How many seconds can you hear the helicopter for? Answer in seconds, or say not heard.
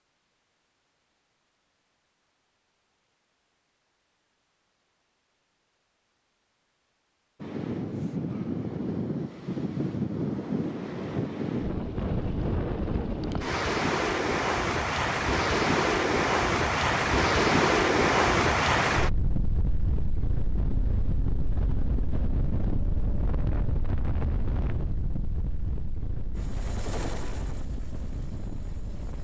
3 s.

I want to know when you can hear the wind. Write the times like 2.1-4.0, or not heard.
7.4-29.1.